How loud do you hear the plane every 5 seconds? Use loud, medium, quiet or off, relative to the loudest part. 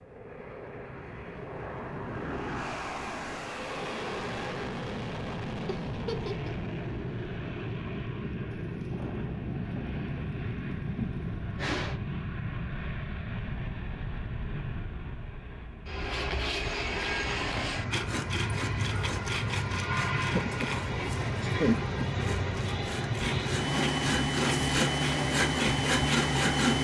medium, medium, medium, medium, loud, loud.